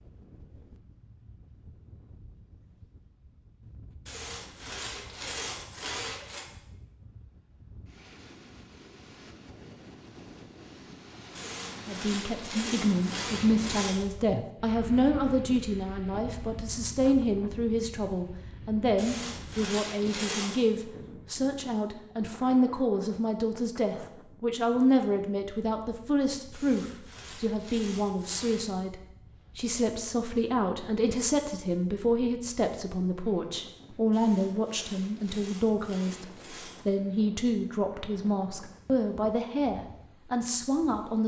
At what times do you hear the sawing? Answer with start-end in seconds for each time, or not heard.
4.0-6.5, 11.3-14.1, 18.9-20.6, 26.5-28.7, 34.1-36.9.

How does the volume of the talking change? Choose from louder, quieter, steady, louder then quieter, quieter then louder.
steady.